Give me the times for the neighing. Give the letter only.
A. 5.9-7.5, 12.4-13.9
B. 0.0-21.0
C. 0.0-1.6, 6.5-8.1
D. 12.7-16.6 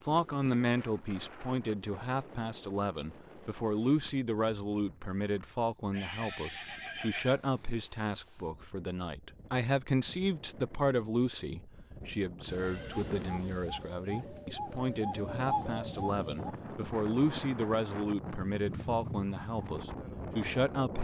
A.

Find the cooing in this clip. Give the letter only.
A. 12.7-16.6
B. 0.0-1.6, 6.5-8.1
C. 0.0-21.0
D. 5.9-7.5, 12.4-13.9
A.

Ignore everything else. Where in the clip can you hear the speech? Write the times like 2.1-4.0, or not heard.
0.0-21.0.